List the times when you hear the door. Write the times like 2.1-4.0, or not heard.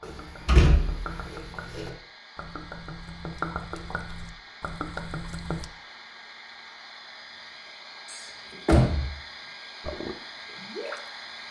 0.1-1.9, 8.1-9.1.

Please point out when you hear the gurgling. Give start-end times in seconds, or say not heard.
0.0-5.7, 9.8-11.0.